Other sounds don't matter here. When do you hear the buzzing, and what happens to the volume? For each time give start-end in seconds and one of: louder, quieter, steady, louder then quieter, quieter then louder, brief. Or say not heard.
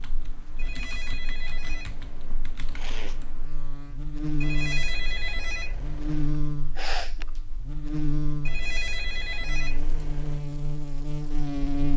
0.0-11.9 louder.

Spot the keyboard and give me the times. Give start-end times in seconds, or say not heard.
0.0-3.5.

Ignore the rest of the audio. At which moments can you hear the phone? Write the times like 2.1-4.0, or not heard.
0.6-2.4, 4.4-6.4, 8.4-10.4.